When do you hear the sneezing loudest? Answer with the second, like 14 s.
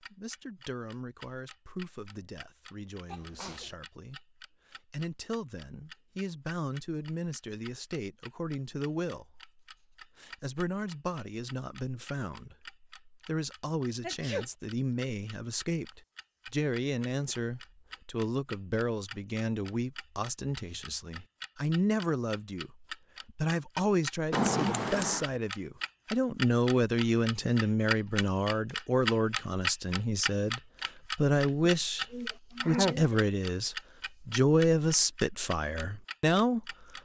33 s.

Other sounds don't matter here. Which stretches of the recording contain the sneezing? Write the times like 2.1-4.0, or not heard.
3.0-3.8, 14.0-14.4, 31.6-33.3.